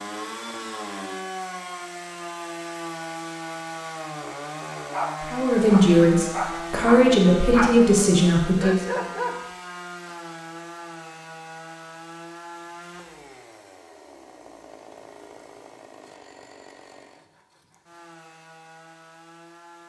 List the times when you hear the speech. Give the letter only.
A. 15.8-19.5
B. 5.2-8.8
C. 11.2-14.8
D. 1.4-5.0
B.